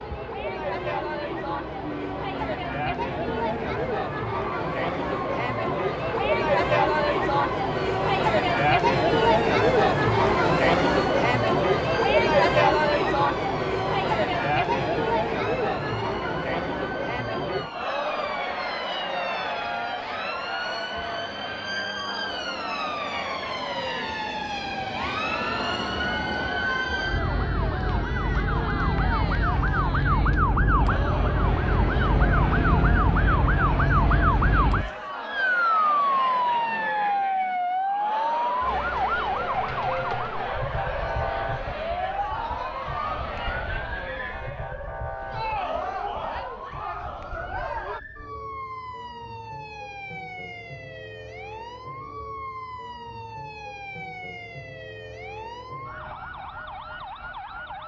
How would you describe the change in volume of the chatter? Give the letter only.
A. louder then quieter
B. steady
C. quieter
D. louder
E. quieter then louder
C.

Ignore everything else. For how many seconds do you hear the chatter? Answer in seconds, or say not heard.
48 s.